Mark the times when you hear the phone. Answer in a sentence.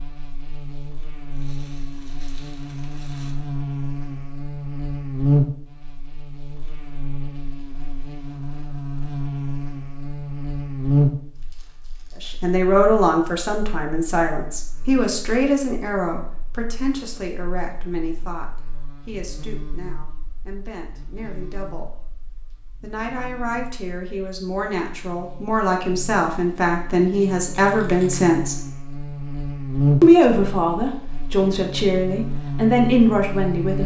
The phone can't be heard in this clip.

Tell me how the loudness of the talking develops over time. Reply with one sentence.
The loudness of the talking goes down, then up.